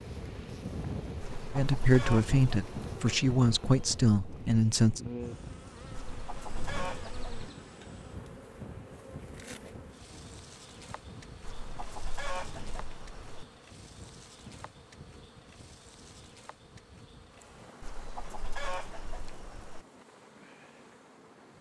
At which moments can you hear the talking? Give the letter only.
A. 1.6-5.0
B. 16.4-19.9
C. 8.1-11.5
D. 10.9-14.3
A.